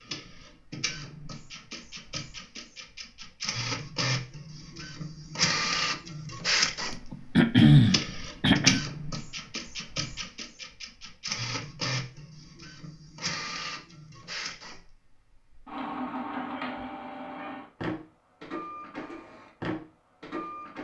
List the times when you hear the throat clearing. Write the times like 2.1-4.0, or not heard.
7.1-8.8.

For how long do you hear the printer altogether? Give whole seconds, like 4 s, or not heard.
21 s.